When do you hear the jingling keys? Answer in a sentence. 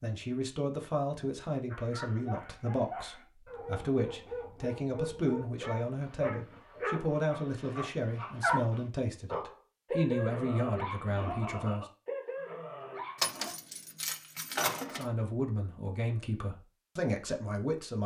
The jingling keys can be heard from 13.2 to 15.1 s.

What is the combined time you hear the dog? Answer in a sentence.
The dog can be heard for 12 seconds in total.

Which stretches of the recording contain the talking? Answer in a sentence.
The talking can be heard from 0.0 to 11.8 s and from 14.9 to 18.0 s.